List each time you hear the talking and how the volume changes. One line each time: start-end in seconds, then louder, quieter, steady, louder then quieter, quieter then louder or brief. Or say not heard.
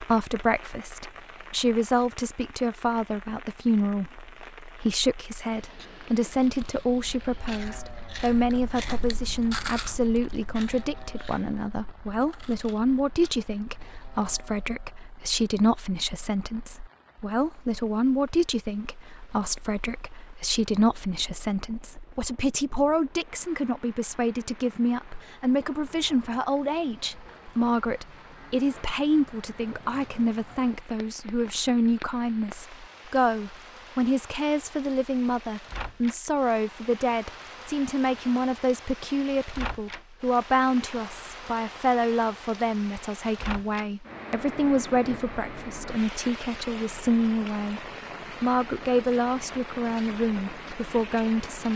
0.0-51.7 steady.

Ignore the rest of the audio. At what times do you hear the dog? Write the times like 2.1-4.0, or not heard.
not heard.